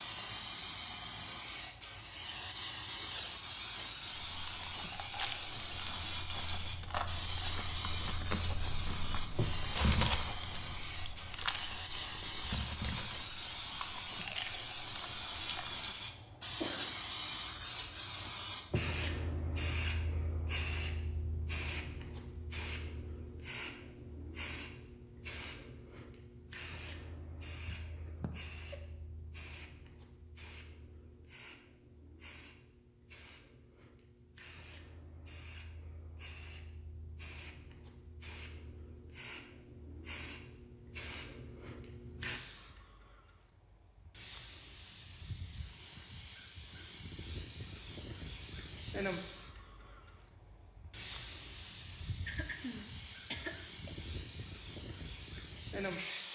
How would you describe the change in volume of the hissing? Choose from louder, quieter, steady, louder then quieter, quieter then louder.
quieter then louder.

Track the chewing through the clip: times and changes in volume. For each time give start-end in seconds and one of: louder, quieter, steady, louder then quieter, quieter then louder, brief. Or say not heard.
4.3-15.9 louder then quieter.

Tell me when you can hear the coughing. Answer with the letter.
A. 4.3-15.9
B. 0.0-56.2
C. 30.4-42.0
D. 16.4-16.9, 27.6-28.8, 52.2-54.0
D.